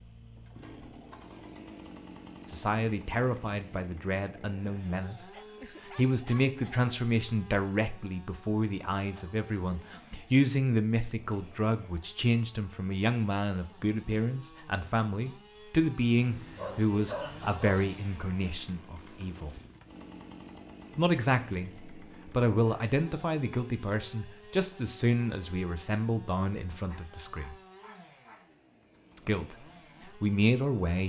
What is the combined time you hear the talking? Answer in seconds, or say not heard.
25 s.